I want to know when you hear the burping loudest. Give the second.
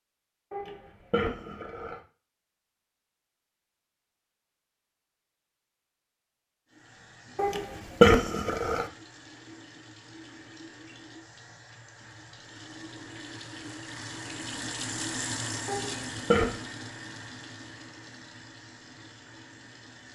8 s.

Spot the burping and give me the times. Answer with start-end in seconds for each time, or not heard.
0.5-2.0, 7.3-8.8, 15.7-16.6.